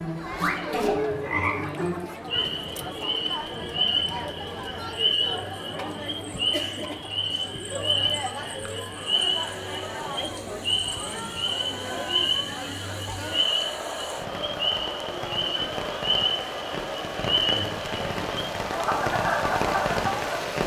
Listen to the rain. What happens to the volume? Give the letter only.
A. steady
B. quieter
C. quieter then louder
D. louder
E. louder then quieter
D.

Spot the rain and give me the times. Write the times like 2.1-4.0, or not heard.
8.9-20.6.